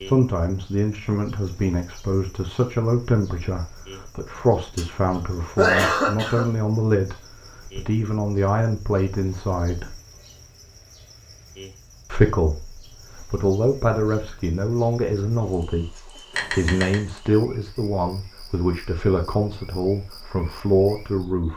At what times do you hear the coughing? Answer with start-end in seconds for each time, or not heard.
4.3-6.5, 16.4-16.9.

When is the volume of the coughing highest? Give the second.
6 s.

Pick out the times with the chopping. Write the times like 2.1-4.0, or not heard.
not heard.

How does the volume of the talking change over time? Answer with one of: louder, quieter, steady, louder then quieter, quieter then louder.
steady.